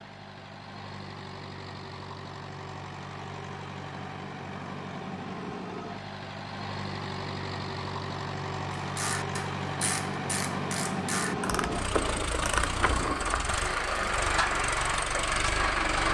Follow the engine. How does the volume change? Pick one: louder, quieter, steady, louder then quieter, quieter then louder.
louder.